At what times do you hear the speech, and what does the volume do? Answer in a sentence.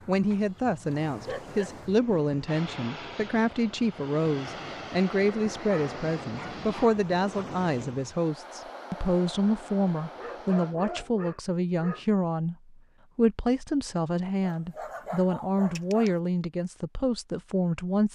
You can hear the speech from 0.1 to 18.1 s, at a steady volume.